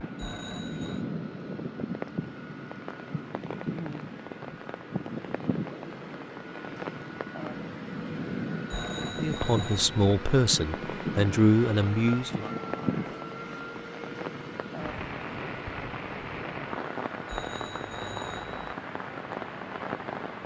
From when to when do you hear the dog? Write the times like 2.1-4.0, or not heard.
not heard.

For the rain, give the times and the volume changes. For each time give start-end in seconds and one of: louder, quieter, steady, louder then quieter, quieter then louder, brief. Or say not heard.
0.0-20.4 steady.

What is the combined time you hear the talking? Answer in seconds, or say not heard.
3 s.